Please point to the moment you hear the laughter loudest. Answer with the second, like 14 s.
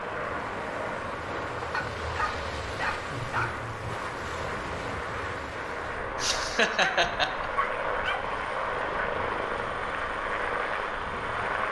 7 s.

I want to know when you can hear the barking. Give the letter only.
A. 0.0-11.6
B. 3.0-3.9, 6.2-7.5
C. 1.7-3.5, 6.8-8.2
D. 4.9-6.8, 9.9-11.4
C.